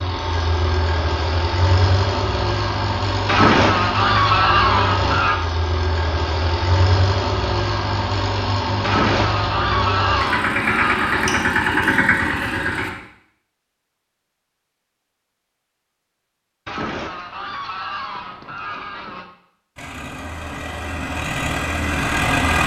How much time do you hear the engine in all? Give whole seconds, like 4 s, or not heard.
16 s.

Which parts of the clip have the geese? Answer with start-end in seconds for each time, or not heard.
3.2-5.4, 8.8-11.4, 16.6-19.2.